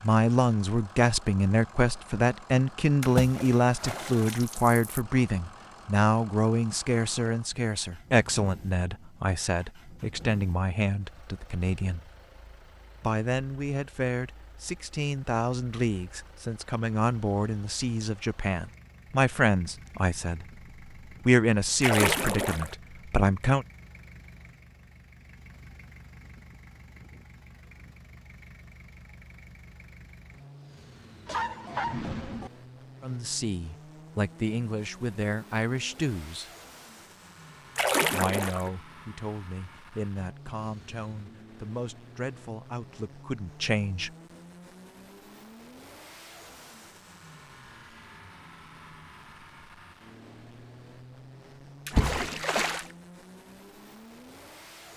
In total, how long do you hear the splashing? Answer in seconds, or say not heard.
5 s.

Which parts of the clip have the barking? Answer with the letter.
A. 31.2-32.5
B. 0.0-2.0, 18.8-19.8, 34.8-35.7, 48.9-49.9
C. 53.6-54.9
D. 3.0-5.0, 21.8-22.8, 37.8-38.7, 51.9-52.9
A.